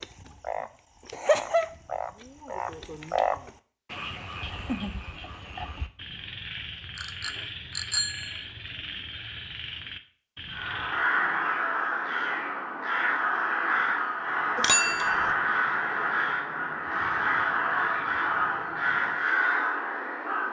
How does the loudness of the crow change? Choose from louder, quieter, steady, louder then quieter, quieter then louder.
steady.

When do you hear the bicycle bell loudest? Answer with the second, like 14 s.
15 s.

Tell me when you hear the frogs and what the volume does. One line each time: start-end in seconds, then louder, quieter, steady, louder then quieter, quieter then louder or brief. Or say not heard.
0.0-11.1 quieter.